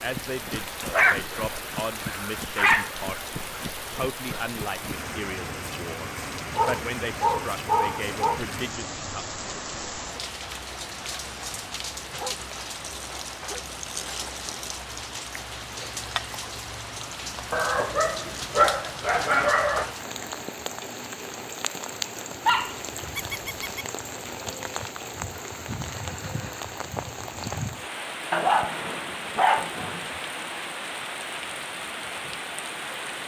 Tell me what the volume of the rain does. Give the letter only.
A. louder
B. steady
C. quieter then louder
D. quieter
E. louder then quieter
B.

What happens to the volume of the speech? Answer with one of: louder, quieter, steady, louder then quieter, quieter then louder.
steady.